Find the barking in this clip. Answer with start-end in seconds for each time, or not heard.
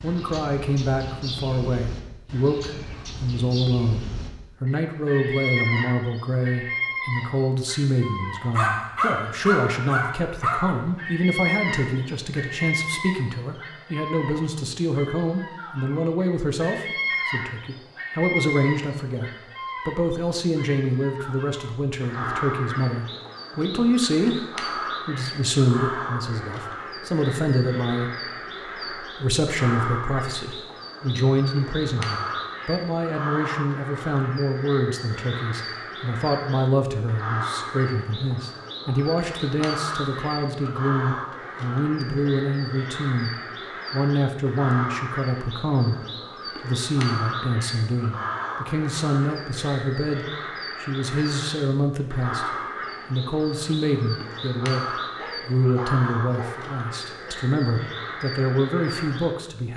8.6-10.8, 55.1-56.5.